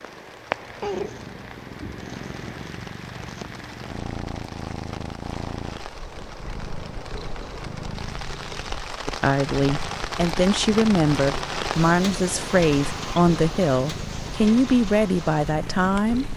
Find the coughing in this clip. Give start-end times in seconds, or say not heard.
not heard.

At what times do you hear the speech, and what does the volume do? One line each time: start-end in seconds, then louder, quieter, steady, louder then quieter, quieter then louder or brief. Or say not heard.
9.1-16.2 steady.